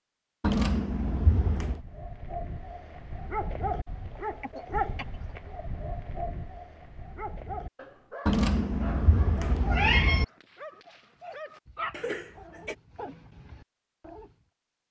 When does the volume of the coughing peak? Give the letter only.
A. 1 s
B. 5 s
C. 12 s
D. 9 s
C.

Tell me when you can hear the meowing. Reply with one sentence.
The meowing can be heard from 0.4 to 1.8 s and from 8.2 to 10.2 s.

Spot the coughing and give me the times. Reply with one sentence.
You can hear the coughing from 4.2 to 5.3 s and from 11.9 to 12.8 s.